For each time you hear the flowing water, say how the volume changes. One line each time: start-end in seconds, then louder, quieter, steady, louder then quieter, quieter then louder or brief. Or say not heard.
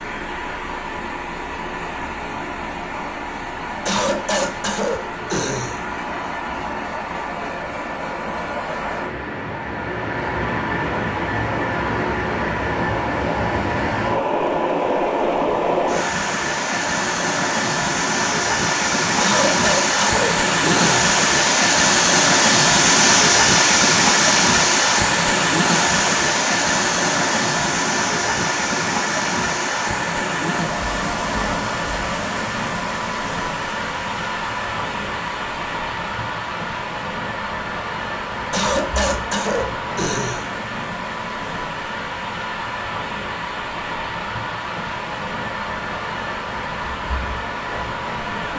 0.0-48.5 louder then quieter.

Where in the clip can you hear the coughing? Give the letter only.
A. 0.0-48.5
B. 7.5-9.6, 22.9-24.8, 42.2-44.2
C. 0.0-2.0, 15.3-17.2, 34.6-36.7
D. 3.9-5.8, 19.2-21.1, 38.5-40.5
D.